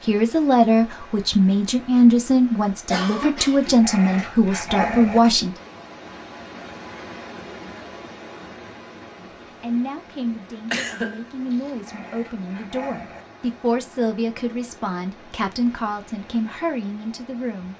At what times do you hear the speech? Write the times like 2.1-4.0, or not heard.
0.0-5.5, 9.2-17.7.